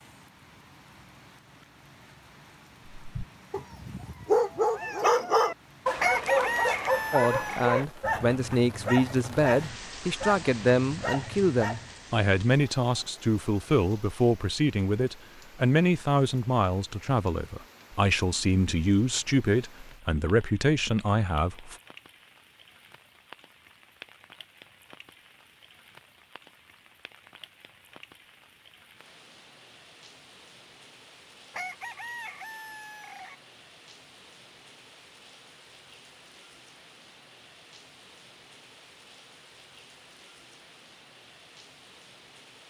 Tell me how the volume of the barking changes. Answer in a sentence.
The loudness of the barking goes down.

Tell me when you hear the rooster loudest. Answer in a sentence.
The volume of the rooster peaks at 6 seconds.